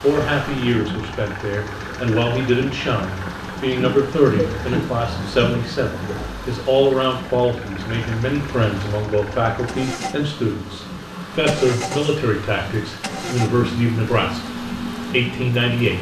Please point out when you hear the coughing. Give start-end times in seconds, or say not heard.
3.7-6.2.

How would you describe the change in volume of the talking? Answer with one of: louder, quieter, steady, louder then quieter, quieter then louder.
steady.